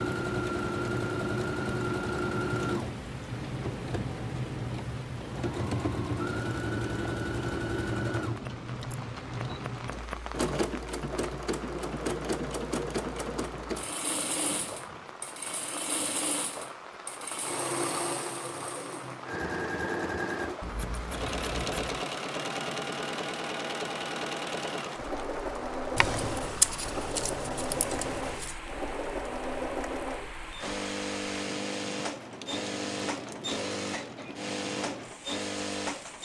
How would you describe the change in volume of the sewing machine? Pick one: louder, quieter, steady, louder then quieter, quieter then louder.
steady.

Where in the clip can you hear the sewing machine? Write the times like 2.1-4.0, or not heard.
0.0-36.2.